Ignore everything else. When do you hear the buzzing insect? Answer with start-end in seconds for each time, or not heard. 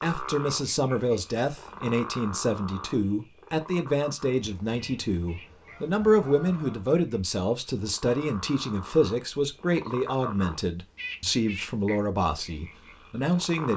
not heard.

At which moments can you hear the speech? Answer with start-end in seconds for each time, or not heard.
0.0-13.7.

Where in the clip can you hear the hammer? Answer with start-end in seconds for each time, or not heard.
not heard.